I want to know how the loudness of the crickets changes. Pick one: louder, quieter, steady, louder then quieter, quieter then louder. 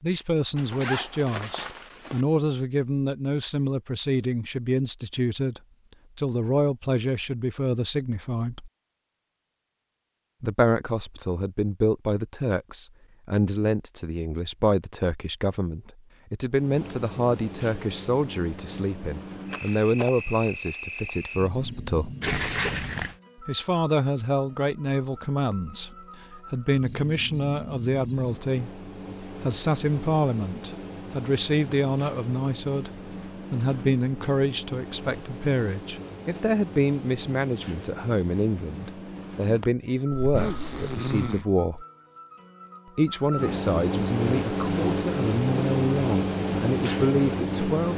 louder.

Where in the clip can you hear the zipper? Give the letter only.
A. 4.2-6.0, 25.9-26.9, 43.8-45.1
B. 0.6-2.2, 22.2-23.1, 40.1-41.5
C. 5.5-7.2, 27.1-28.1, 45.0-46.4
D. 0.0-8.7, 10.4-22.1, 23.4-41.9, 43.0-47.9
B.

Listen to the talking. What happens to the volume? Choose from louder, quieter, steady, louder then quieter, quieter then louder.
steady.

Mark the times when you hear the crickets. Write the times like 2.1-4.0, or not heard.
16.5-47.9.